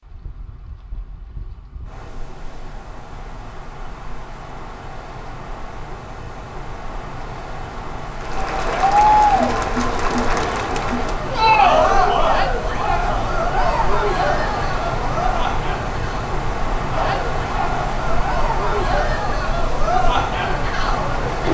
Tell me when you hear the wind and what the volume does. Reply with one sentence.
The wind can be heard from 0.0 to 21.4 s, getting louder.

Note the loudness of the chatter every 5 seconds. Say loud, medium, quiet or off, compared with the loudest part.
off, loud, loud, medium, medium.